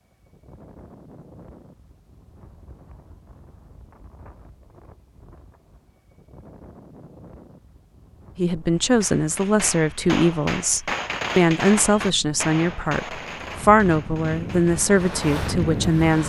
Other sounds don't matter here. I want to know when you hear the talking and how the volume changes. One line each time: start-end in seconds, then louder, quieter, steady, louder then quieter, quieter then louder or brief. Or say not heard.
8.3-16.2 steady.